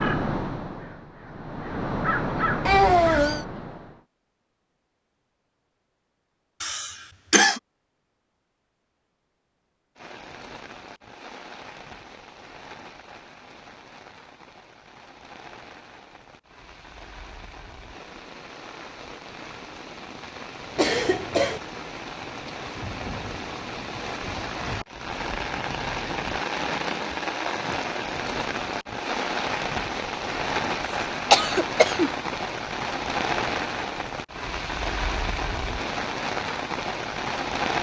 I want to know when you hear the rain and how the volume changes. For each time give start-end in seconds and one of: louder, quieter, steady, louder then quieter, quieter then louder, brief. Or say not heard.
9.9-37.7 louder.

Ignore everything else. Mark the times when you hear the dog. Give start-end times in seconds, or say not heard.
not heard.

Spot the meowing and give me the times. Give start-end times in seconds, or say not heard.
2.6-3.5.